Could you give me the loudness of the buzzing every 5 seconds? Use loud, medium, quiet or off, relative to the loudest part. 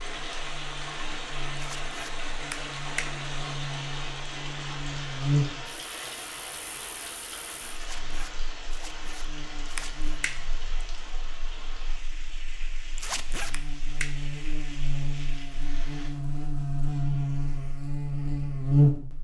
quiet, medium, quiet, loud.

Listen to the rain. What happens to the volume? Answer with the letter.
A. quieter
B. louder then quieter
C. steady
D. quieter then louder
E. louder
A.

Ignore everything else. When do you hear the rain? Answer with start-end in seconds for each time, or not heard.
0.0-16.1.